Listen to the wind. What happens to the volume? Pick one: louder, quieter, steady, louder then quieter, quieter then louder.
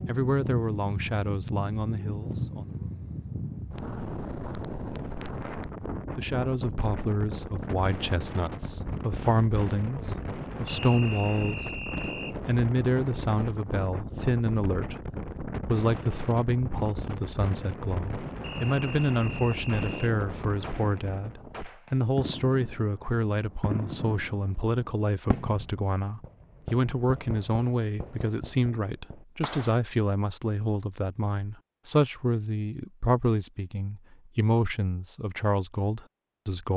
steady.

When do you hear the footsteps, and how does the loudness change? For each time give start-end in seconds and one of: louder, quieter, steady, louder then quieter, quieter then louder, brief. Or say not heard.
not heard.